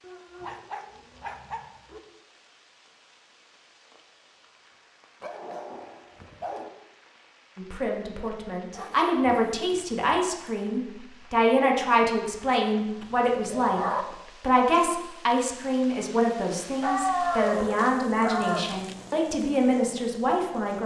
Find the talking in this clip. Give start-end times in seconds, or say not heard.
7.5-13.8, 14.4-20.8.